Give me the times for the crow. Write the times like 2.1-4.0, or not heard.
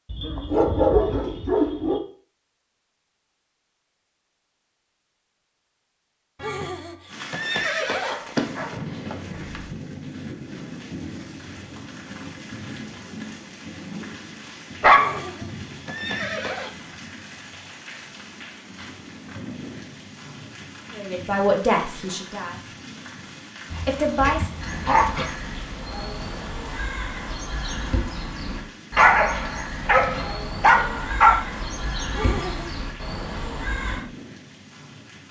24.4-34.0.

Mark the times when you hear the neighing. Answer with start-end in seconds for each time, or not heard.
6.3-8.2, 14.9-16.7, 32.1-32.8.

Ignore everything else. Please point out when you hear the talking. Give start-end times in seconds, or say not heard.
20.9-22.8, 23.9-24.5.